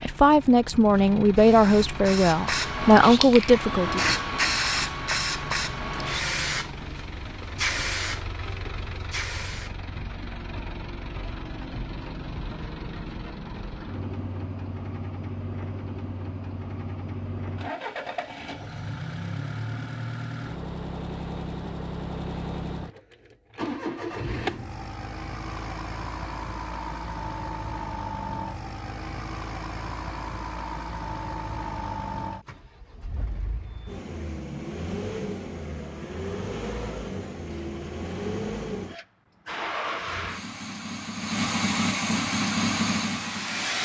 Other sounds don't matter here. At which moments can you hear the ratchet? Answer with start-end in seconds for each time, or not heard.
not heard.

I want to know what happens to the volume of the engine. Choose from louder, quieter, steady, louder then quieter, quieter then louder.
louder.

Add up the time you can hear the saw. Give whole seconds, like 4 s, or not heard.
not heard.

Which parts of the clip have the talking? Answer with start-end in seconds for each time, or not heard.
0.0-4.2.